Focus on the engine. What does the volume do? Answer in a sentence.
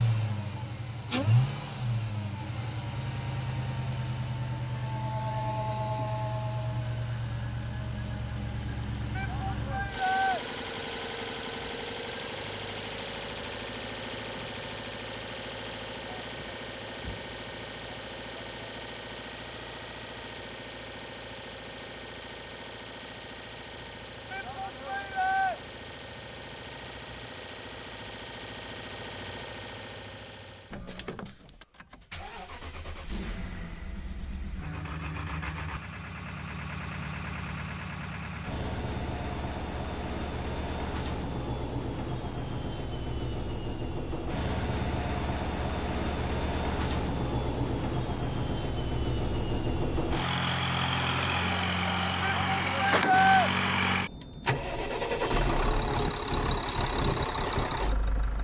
The volume of the engine goes down, then up.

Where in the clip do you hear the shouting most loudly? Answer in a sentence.
The loudest moment of the shouting is at 53 seconds.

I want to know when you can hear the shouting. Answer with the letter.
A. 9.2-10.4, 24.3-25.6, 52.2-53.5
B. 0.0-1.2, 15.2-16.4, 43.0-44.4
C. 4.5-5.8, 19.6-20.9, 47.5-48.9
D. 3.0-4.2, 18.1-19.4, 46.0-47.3
A.